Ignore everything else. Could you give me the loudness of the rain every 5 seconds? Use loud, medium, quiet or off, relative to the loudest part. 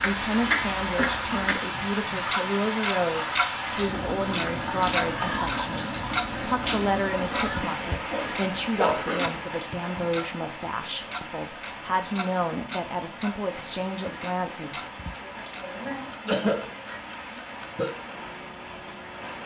loud, loud, medium, medium.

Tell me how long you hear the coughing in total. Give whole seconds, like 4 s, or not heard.
5 s.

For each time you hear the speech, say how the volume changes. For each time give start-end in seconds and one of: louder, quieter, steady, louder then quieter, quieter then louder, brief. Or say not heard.
0.0-14.8 steady.